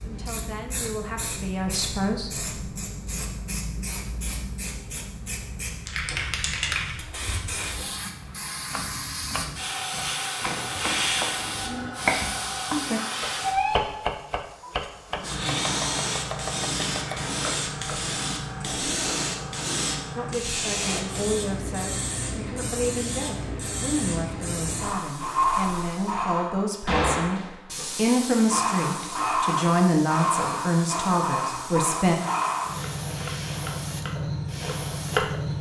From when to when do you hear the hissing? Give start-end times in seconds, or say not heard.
0.0-35.5.